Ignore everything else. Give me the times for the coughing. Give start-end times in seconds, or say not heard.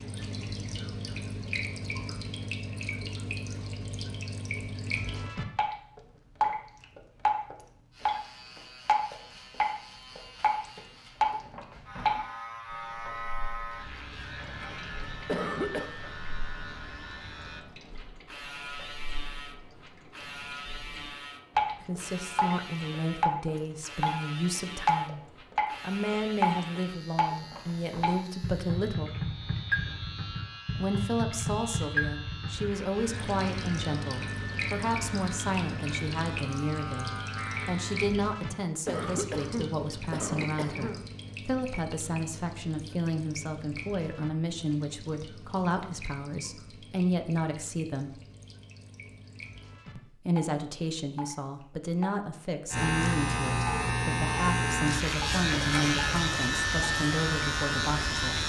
15.2-15.9, 38.9-41.0.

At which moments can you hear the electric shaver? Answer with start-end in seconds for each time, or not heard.
7.9-38.1, 52.7-58.4.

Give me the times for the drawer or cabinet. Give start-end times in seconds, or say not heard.
not heard.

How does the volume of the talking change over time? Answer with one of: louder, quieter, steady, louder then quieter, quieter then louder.
steady.